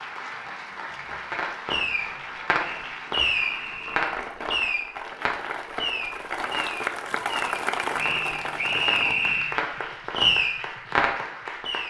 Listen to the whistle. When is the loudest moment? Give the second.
9 s.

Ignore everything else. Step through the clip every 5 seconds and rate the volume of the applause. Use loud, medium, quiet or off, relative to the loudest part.
medium, loud, medium.